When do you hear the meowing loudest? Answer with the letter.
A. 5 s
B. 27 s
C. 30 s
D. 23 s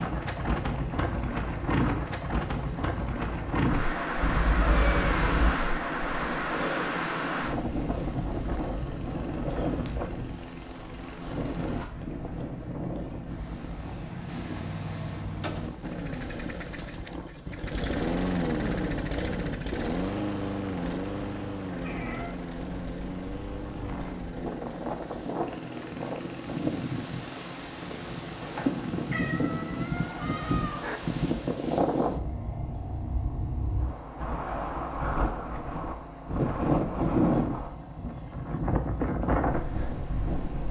A.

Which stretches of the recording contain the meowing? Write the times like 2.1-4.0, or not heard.
4.2-5.5, 21.6-22.4, 28.4-31.0.